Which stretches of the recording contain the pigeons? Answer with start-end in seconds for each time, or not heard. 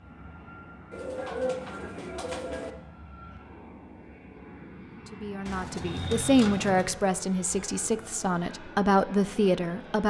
0.9-2.8, 5.5-7.0.